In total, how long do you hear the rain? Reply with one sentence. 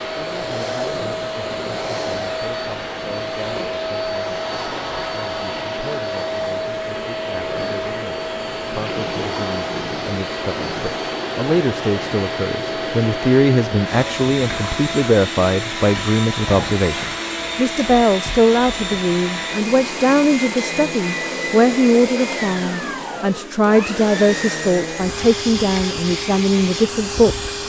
The rain can't be heard in this clip.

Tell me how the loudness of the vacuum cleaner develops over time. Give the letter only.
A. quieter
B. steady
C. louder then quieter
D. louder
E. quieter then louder
B.